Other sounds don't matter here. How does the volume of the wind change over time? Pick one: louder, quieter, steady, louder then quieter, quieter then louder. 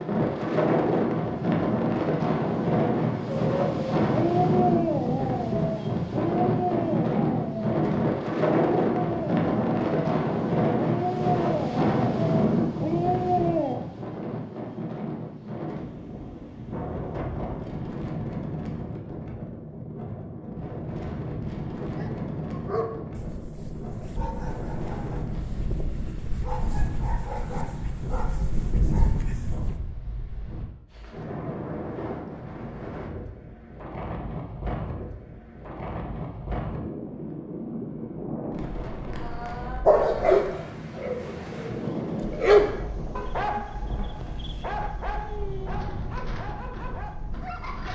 quieter.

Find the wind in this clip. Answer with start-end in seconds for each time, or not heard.
0.0-47.9.